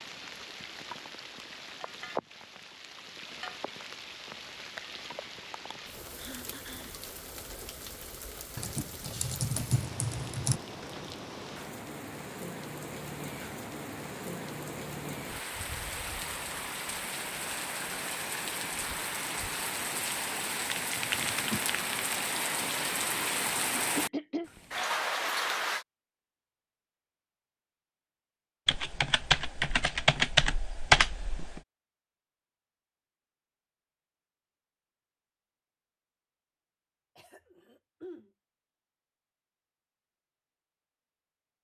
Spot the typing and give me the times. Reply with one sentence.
You can hear the typing from 8.6 to 10.6 s, from 20.6 to 22.1 s and from 28.6 to 31.6 s.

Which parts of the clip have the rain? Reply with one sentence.
You can hear the rain from 0.0 to 25.9 s.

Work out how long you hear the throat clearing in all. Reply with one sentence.
You can hear the throat clearing for 3 seconds altogether.